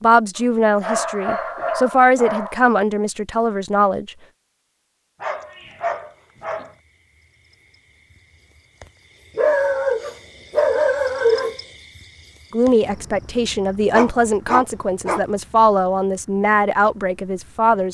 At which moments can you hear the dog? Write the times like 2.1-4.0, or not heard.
0.3-2.6, 5.2-6.8, 9.3-11.6, 13.9-15.2.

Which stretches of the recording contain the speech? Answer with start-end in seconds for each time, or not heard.
0.0-4.1, 12.5-17.9.